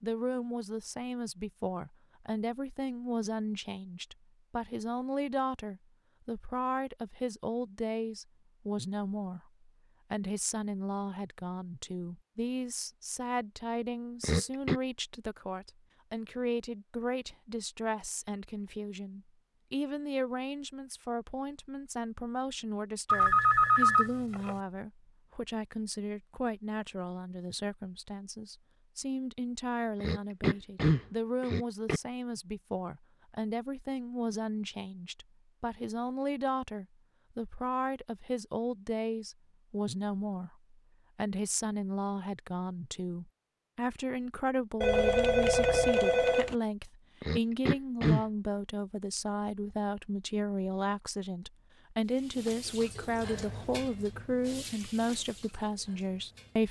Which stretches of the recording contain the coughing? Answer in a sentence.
The coughing can be heard from 14.2 to 14.8 s, from 30.0 to 32.0 s and from 47.2 to 48.2 s.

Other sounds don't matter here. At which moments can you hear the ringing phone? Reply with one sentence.
The ringing phone can be heard from 23.1 to 24.6 s and from 44.8 to 46.5 s.